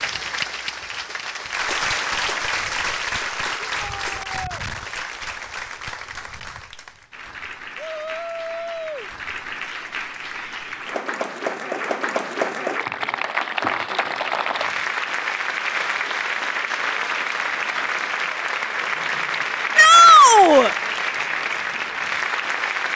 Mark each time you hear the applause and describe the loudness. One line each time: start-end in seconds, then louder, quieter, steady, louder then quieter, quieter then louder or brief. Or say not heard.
0.0-22.9 quieter then louder.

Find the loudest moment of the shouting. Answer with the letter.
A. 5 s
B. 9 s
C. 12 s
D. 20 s
D.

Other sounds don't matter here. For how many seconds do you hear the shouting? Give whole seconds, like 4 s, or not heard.
3 s.